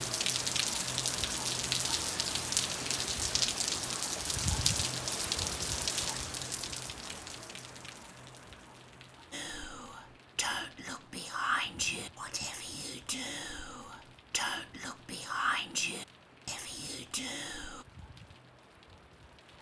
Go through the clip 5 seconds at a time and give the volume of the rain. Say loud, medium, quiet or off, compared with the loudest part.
loud, medium, quiet, quiet.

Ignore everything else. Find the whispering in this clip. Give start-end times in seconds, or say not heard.
9.3-17.9.